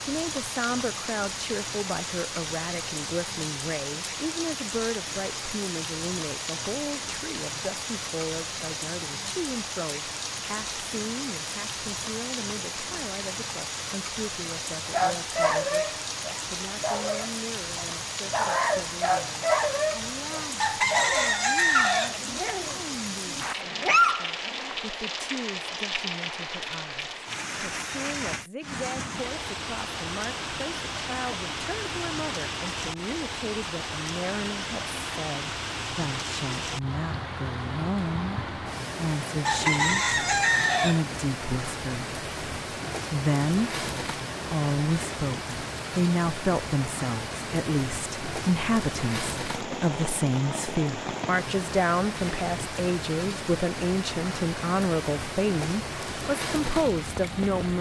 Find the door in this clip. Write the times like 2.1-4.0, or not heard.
not heard.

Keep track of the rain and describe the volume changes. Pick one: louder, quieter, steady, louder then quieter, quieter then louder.
steady.